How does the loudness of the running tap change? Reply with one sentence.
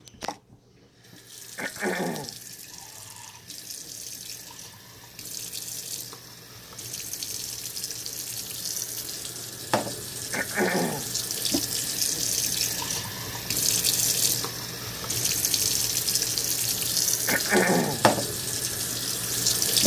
The volume of the running tap goes up.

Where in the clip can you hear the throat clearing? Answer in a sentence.
You can hear the throat clearing from 1.6 to 2.4 s, from 10.3 to 11.1 s and from 17.2 to 18.1 s.